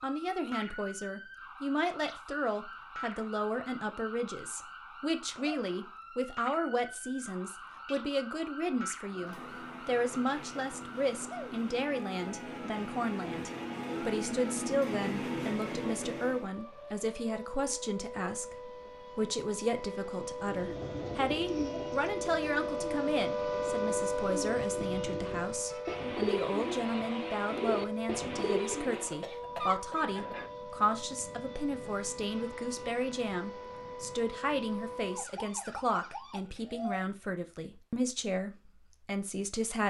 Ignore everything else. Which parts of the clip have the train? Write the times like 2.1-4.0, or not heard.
9.1-16.5.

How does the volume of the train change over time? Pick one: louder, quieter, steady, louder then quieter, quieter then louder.
louder.